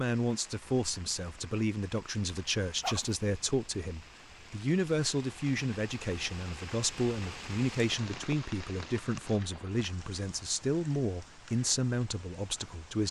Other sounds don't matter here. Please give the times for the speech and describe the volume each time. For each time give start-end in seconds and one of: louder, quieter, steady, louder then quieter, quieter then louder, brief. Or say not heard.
0.0-13.0 steady.